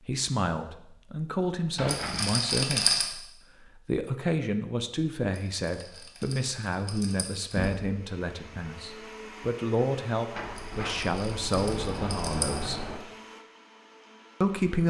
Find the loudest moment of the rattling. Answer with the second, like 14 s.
3 s.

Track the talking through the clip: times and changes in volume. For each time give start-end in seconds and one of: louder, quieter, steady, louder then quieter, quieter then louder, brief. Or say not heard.
0.0-12.9 steady
14.4-14.8 brief.